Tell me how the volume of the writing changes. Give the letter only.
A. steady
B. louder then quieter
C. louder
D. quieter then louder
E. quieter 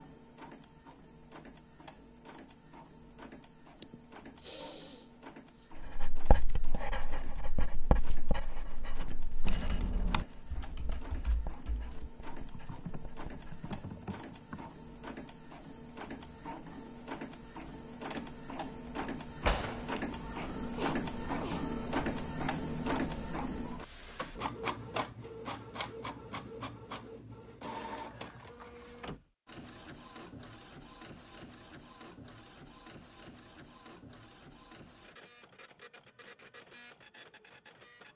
E.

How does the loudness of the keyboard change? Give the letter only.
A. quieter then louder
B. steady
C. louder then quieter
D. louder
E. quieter
A.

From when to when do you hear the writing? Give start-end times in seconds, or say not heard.
5.8-13.7.